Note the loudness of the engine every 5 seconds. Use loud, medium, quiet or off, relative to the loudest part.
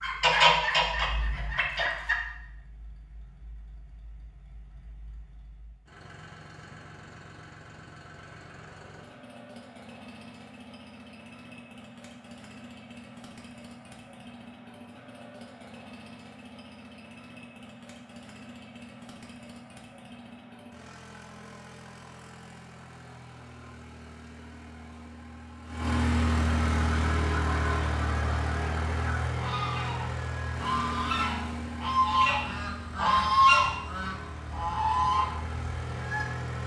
quiet, quiet, quiet, quiet, quiet, loud, medium, medium.